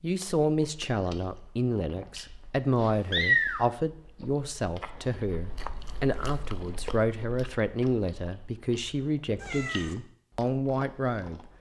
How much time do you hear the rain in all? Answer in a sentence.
You can't hear the rain here.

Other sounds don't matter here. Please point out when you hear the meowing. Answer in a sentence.
The meowing can be heard from 3.1 to 3.6 s and from 9.4 to 9.9 s.